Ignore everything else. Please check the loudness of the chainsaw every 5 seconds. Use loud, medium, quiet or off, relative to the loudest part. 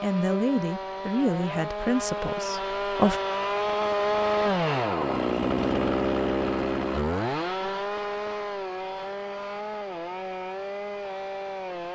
loud, loud, medium.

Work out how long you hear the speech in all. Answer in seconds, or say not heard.
3 s.